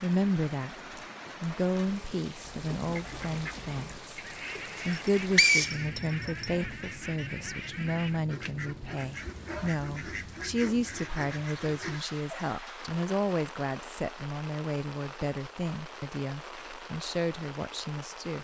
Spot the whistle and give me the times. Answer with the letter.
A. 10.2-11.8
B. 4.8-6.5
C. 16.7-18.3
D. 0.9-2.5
B.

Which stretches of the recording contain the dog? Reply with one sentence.
You can't hear the dog here.